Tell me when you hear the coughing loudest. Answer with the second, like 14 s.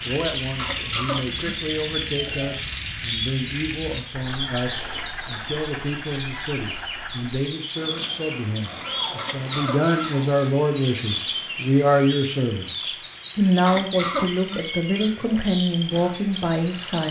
14 s.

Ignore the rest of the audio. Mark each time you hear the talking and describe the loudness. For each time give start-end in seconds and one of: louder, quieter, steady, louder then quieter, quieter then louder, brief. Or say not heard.
0.0-17.0 louder.